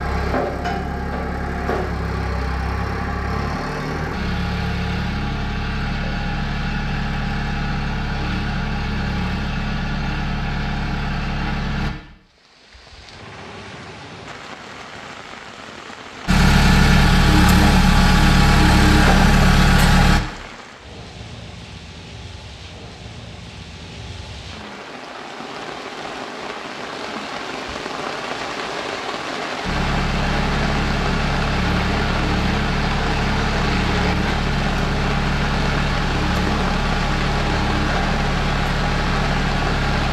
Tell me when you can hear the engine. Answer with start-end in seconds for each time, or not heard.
0.0-11.9, 16.2-20.2, 29.6-40.0.